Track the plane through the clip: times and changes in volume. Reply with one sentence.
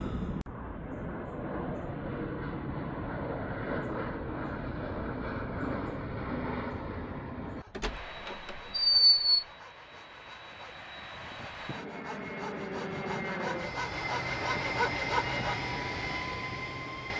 You can hear the plane from 0.0 to 17.1 s, getting quieter then louder.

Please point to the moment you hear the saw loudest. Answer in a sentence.
The loudest moment of the saw is at 15 seconds.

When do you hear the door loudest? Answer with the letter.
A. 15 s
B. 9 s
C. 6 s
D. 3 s
B.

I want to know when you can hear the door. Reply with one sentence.
The door can be heard from 7.8 to 9.3 s.